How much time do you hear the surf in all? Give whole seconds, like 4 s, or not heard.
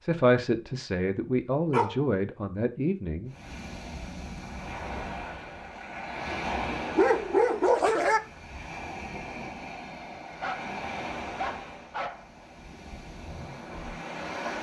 11 s.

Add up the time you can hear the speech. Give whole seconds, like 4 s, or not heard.
3 s.